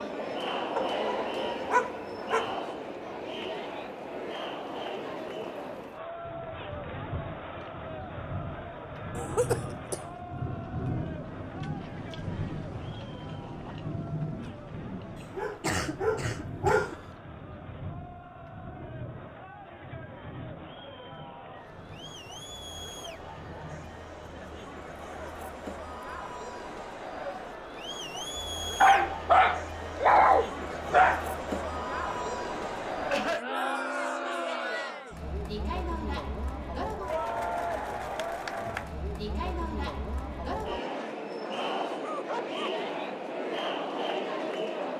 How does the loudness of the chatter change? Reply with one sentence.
The volume of the chatter goes down, then up.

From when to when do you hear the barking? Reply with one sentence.
You can hear the barking from 0.8 to 2.5 s, from 15.3 to 16.9 s, from 28.8 to 31.2 s and from 41.0 to 42.8 s.